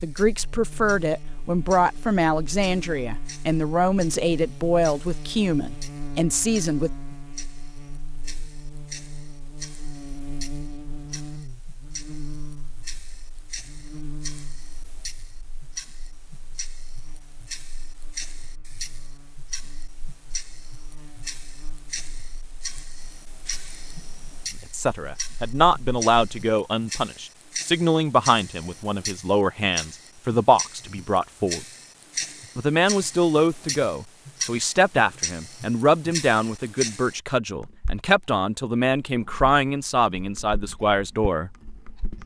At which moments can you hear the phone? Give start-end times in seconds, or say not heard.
not heard.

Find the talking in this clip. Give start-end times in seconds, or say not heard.
0.0-6.9, 24.7-31.6, 32.5-41.5.